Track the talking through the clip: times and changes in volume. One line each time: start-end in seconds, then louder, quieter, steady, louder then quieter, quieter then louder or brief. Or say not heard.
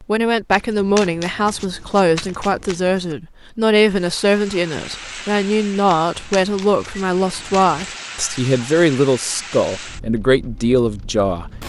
0.0-11.5 steady.